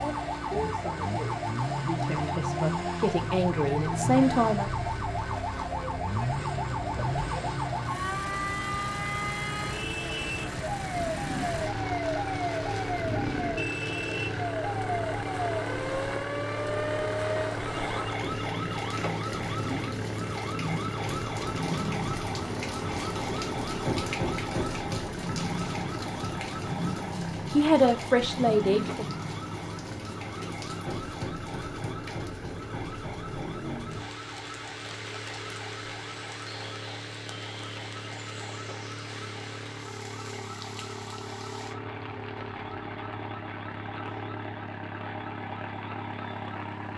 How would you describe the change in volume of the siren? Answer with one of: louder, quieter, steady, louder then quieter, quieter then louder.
quieter.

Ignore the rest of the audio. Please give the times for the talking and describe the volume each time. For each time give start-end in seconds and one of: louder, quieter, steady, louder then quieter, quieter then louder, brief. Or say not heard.
0.0-4.7 louder
27.5-29.1 brief.